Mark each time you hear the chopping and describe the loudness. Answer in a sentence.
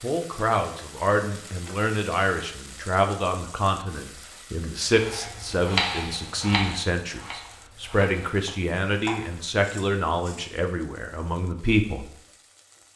You can hear the chopping from 4.9 to 10.4 s, getting quieter.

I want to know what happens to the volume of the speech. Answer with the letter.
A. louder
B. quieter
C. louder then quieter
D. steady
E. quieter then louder
D.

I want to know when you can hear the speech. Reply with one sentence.
The speech can be heard from 0.0 to 12.1 s.